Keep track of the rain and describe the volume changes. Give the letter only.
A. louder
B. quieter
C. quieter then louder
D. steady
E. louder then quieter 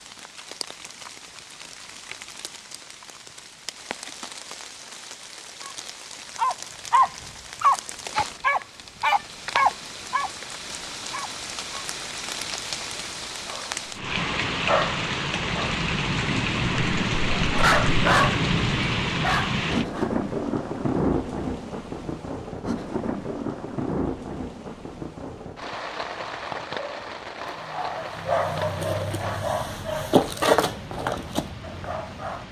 E.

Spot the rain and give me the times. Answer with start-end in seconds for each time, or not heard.
0.0-32.4.